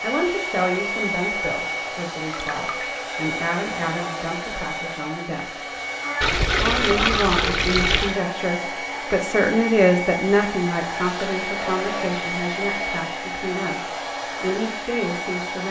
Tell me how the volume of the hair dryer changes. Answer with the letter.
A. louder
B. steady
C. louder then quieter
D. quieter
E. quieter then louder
B.